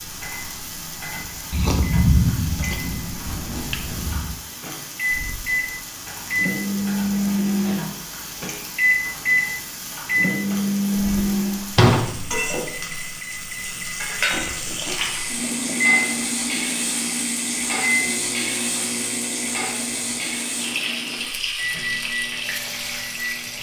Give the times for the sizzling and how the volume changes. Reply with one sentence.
You can hear the sizzling from 0.0 to 23.5 s, getting louder.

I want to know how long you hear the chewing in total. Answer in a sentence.
The chewing can be heard for 5 seconds in total.